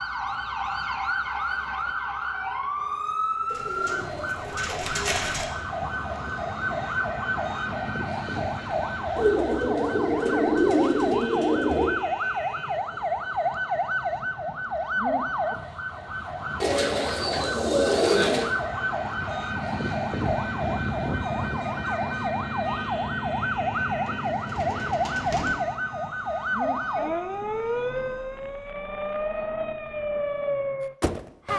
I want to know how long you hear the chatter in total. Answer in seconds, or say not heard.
not heard.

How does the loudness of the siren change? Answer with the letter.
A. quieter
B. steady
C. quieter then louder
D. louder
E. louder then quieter
B.